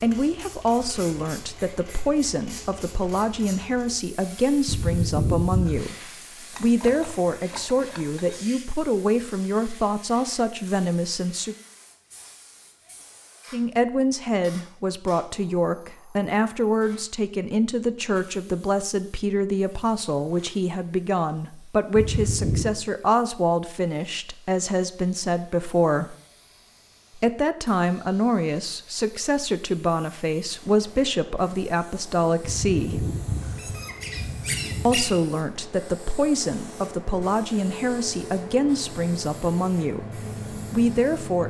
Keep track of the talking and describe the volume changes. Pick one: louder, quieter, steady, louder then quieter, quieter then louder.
steady.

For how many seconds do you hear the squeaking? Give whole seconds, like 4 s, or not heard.
5 s.